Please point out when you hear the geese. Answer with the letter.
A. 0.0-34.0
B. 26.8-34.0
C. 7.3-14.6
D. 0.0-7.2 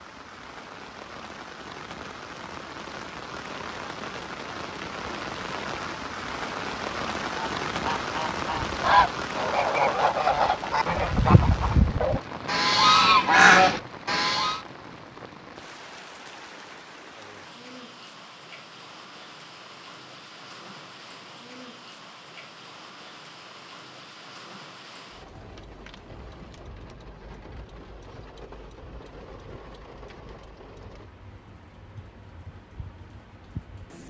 C.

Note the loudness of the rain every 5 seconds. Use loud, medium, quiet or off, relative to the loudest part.
medium, loud, medium, quiet, quiet, quiet, quiet.